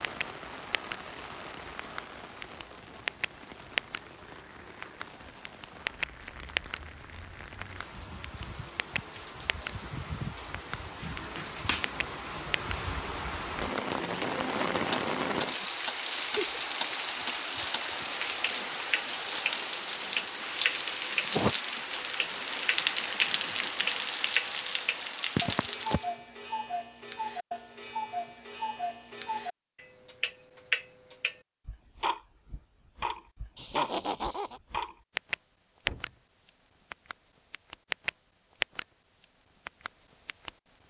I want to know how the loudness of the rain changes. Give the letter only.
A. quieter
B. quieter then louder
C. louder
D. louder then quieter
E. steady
C.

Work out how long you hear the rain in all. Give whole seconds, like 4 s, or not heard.
26 s.